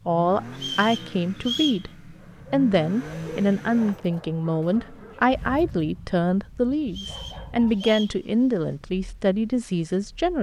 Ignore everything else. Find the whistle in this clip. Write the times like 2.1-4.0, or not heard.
0.6-1.9, 6.8-8.2.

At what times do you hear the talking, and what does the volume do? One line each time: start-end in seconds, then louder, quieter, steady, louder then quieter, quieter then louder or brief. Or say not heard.
0.1-10.3 steady.